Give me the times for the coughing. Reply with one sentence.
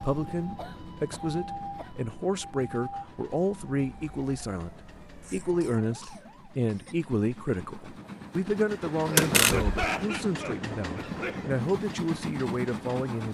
The coughing can be heard from 0.6 to 1.9 s, from 5.2 to 7.0 s and from 9.1 to 11.4 s.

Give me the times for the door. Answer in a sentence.
You can hear the door from 9.2 to 9.8 s.